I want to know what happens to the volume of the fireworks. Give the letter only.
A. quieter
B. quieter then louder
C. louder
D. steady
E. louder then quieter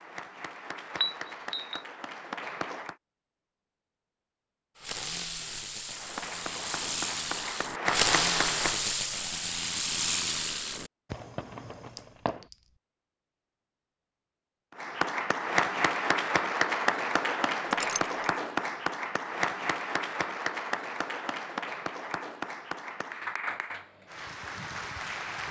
E.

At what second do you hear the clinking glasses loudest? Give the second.
1 s.